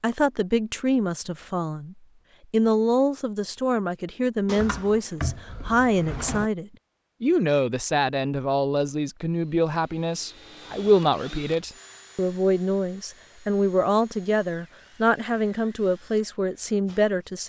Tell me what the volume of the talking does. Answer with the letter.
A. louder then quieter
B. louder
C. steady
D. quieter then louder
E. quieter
C.